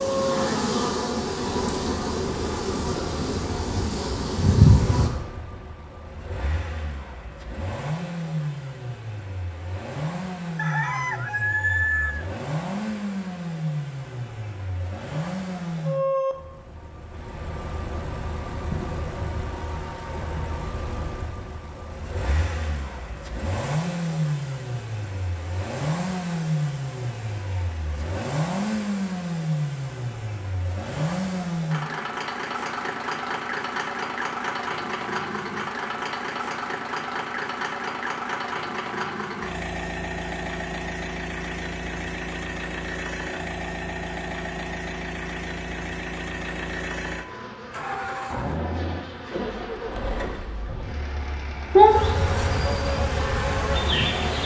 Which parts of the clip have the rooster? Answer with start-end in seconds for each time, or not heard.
10.6-12.2.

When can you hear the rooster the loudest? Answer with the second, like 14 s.
12 s.